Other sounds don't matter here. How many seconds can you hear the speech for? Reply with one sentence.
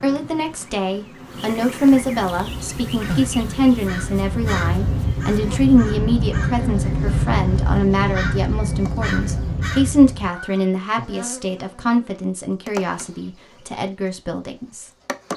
The speech can be heard for 15 seconds in total.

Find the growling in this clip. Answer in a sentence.
You can't hear the growling here.